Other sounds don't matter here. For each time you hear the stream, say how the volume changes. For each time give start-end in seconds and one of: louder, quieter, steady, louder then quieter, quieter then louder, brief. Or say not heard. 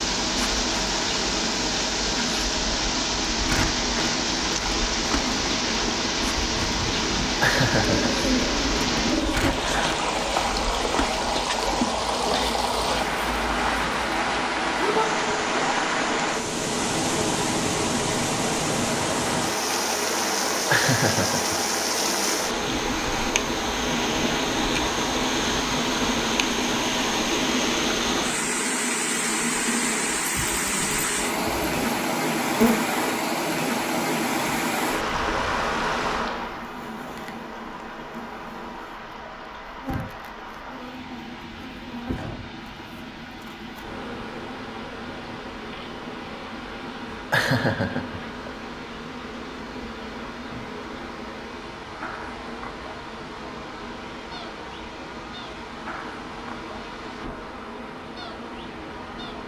0.0-59.4 quieter.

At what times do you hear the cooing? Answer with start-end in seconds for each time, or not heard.
7.7-9.6.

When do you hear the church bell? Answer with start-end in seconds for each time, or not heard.
not heard.